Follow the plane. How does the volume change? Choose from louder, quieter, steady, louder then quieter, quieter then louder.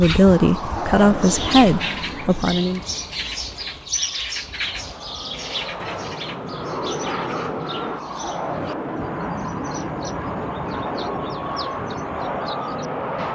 quieter then louder.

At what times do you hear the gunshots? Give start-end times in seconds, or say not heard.
5.8-6.2.